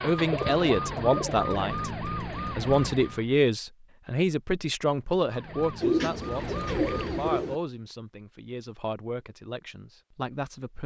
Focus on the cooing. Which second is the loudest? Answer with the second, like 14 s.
6 s.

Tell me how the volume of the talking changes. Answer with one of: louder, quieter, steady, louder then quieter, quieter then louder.
quieter.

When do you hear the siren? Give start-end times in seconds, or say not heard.
0.0-3.3, 5.2-7.5.